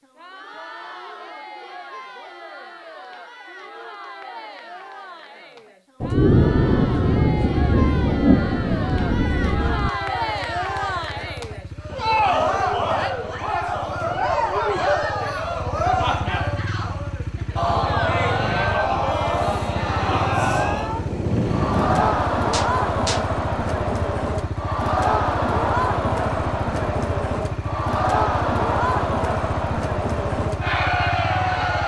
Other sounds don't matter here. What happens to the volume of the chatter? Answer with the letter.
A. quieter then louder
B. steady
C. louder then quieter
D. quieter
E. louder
E.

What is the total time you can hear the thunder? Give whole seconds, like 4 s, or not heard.
8 s.